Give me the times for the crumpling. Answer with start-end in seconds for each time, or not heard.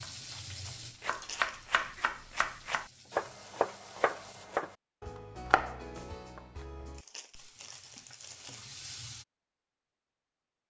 1.1-1.6, 6.9-8.7.